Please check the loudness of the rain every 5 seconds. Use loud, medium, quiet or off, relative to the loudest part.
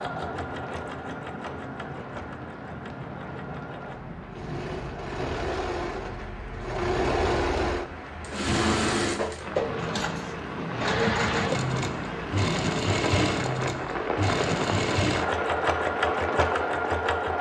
medium, medium, loud, loud.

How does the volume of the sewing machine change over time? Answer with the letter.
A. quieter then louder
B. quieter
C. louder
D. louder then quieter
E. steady
C.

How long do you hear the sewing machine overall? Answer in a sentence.
The sewing machine can be heard for 17 seconds in total.